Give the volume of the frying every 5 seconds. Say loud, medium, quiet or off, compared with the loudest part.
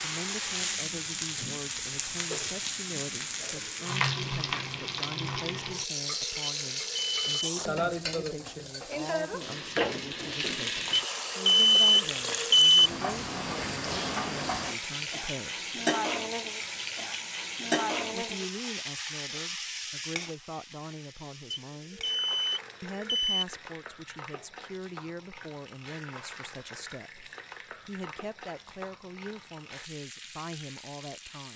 loud, loud, loud, loud, quiet, quiet, quiet.